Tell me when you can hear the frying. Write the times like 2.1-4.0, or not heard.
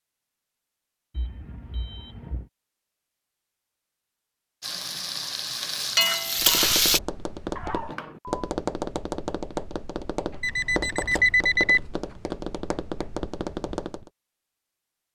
4.6-7.0.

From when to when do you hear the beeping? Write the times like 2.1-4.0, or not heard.
1.1-2.5, 7.5-8.4, 10.4-11.8.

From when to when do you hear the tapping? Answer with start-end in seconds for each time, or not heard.
6.4-14.1.